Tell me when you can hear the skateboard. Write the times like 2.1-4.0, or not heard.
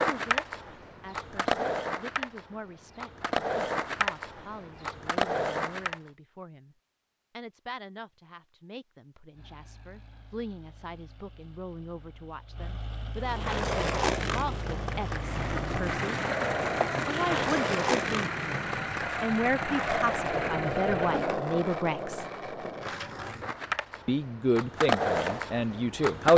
0.0-6.0, 13.2-26.3.